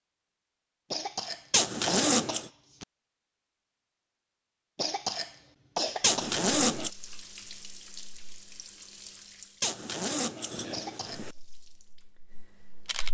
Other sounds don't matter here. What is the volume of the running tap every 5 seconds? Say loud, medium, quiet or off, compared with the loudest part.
off, loud, loud.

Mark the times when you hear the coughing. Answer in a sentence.
The coughing can be heard from 0.9 to 2.9 s, from 4.8 to 6.4 s and from 10.7 to 11.2 s.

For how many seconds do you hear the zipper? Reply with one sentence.
You can hear the zipper for 4 seconds altogether.